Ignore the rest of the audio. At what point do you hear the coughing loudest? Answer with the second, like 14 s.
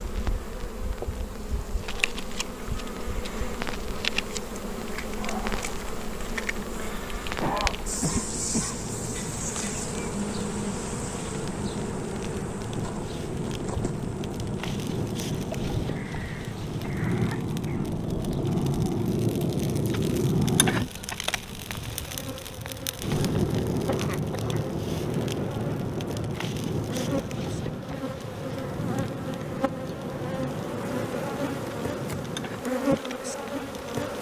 8 s.